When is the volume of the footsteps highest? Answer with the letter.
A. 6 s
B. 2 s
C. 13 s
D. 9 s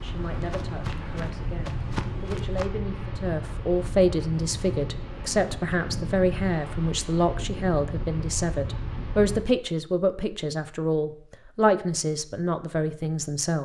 B.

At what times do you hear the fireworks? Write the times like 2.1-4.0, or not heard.
not heard.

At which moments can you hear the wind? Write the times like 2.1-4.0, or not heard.
0.0-9.4.